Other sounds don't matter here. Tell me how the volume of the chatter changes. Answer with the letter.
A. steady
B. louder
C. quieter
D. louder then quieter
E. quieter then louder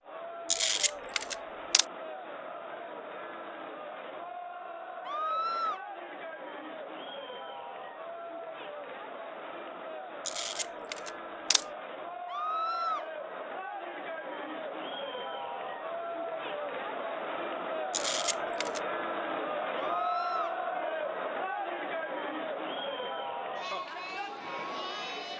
B.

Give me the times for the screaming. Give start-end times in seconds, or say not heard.
5.0-5.8, 12.2-13.1, 19.8-20.6.